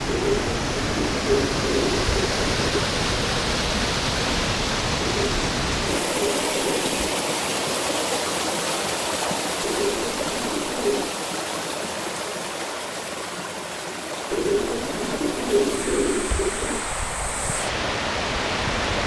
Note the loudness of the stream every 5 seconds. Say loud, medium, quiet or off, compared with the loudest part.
loud, loud, medium, loud.